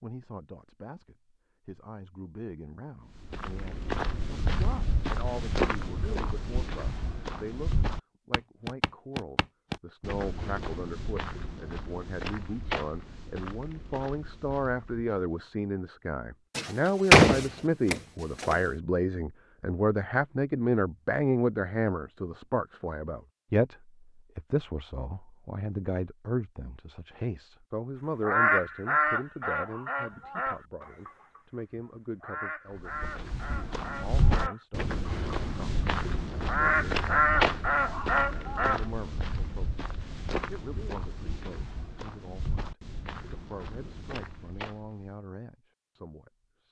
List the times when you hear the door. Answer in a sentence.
You can hear the door from 16.6 to 18.6 s.